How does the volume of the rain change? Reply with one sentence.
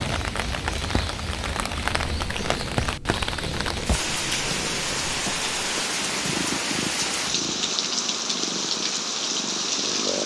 The volume of the rain stays about the same.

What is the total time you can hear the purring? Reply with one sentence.
You can hear the purring for 10 seconds altogether.